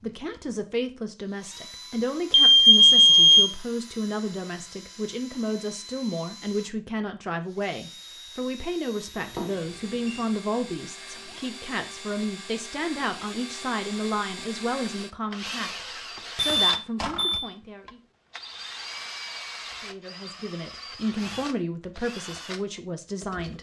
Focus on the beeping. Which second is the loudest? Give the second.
3 s.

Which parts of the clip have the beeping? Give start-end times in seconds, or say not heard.
2.3-3.5, 9.2-10.2, 16.4-17.4.